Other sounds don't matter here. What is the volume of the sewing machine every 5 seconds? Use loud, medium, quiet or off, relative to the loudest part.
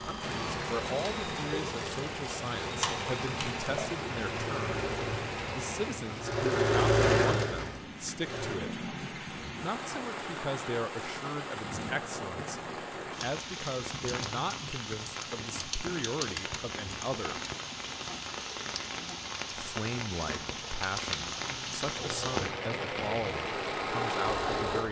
medium, loud, off, off, medium.